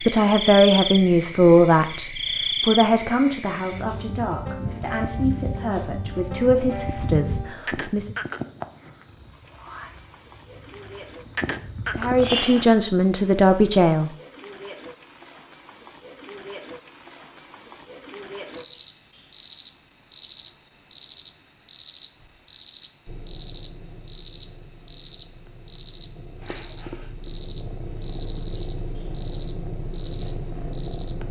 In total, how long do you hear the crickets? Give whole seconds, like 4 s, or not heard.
31 s.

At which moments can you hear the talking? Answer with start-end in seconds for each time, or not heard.
0.1-8.1, 11.9-14.1.